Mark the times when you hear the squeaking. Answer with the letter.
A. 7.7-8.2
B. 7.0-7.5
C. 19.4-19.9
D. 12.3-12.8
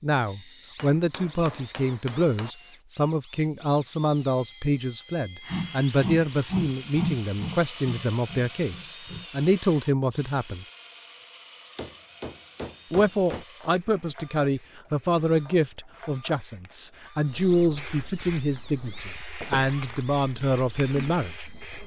C.